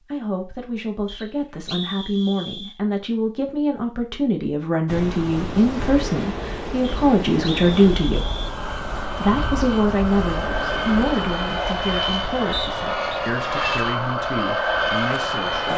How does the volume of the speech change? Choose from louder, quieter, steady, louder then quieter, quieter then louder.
louder then quieter.